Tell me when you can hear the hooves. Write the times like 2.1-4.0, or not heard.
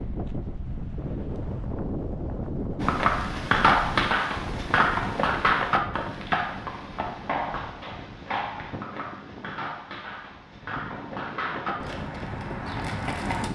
2.8-13.4.